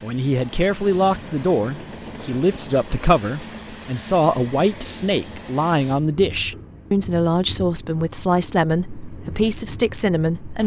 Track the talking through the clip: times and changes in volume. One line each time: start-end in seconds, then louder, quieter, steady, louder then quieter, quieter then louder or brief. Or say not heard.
0.0-10.6 steady.